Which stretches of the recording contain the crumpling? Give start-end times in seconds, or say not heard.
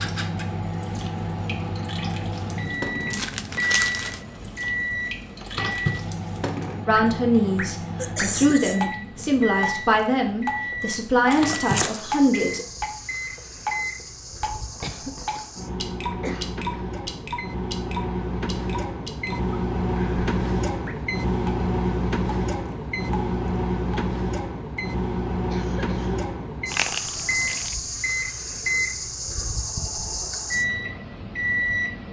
3.1-4.2, 11.3-12.0, 26.7-27.8.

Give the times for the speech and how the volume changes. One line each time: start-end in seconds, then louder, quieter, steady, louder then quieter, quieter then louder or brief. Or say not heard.
6.8-12.7 steady.